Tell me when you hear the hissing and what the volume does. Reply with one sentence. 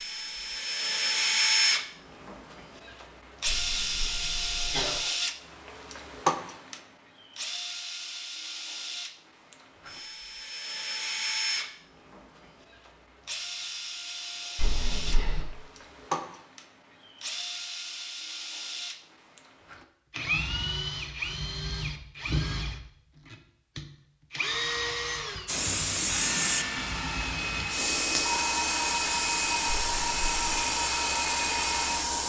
You can hear the hissing from 25.4 to 32.2 s, at a steady volume.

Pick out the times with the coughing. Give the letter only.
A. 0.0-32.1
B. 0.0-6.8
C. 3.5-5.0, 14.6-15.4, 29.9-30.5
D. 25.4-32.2
C.